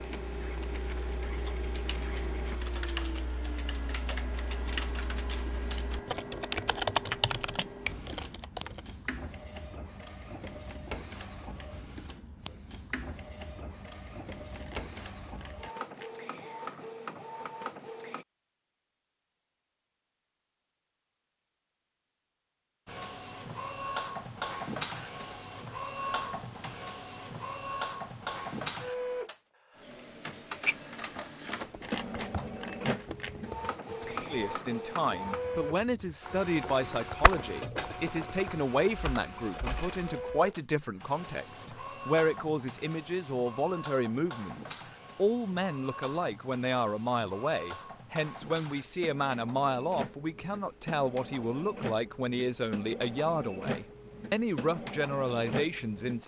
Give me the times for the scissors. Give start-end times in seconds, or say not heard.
14.6-16.2, 31.8-33.5.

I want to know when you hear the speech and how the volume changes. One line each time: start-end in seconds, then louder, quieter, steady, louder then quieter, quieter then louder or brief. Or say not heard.
34.3-56.2 steady.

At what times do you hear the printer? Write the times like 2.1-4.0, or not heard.
0.0-18.2, 22.9-56.2.